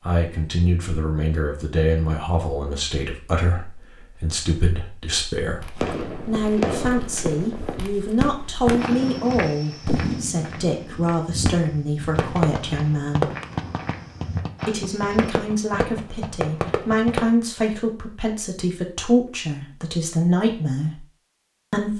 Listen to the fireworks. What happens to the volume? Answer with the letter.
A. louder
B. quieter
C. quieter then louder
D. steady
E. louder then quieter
D.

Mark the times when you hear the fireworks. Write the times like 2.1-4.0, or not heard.
5.8-17.2.